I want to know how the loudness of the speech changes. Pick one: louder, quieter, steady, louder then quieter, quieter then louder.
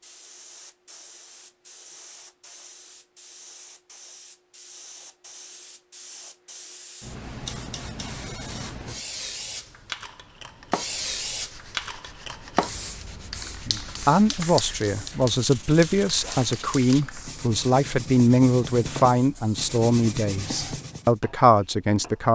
steady.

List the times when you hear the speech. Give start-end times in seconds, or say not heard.
13.6-22.2.